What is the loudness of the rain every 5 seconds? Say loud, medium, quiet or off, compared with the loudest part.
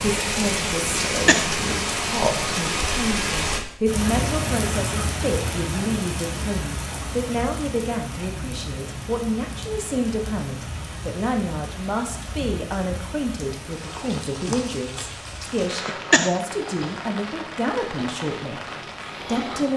loud, medium, medium, medium.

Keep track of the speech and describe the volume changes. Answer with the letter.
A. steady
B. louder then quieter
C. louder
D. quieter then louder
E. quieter
A.